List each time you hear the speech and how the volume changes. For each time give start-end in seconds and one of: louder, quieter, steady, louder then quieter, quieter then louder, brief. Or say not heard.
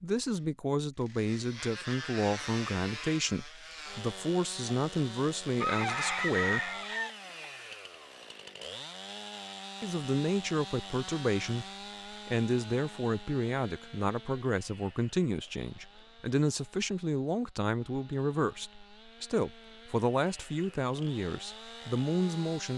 0.0-6.7 steady
9.8-22.7 steady.